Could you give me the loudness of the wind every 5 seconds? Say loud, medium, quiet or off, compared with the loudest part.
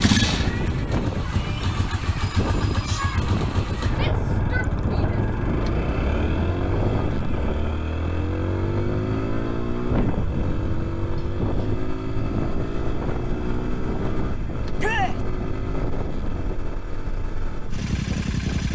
loud, loud, loud, medium.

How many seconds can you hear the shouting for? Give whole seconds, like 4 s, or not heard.
2 s.